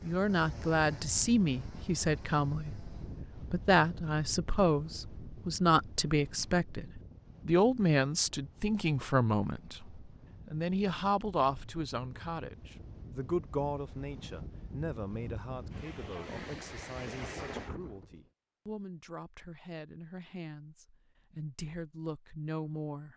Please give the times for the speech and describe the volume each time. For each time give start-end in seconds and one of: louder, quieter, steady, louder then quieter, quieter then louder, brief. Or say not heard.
0.0-23.1 quieter.